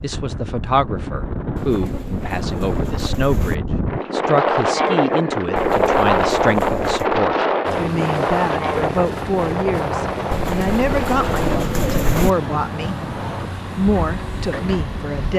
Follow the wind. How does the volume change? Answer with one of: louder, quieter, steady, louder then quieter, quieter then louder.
louder then quieter.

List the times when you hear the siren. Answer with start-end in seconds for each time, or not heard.
not heard.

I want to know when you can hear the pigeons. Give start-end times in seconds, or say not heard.
1.6-3.5, 5.5-7.1, 10.3-12.3.